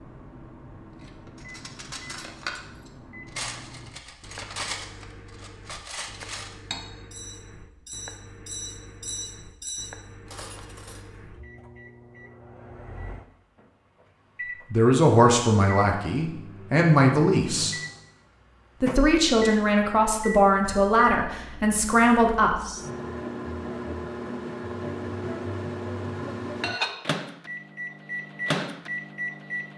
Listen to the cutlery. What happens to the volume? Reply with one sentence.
The loudness of the cutlery stays about the same.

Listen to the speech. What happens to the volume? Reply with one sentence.
The loudness of the speech stays about the same.